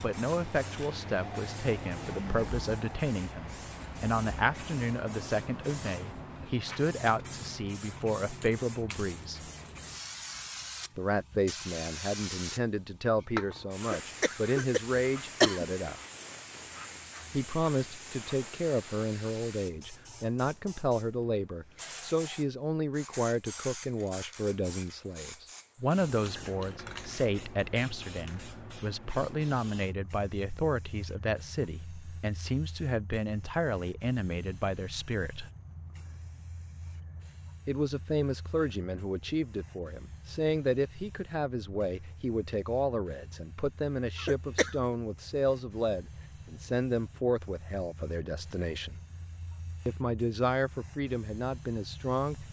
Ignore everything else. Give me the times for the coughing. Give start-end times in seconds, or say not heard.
13.8-15.7, 44.1-44.8.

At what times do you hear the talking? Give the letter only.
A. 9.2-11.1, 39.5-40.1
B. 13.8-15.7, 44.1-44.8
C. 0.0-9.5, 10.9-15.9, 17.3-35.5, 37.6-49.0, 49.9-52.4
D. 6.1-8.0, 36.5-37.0
C.